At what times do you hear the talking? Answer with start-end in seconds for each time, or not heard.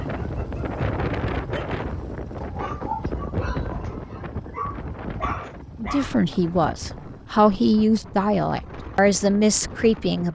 5.8-10.3.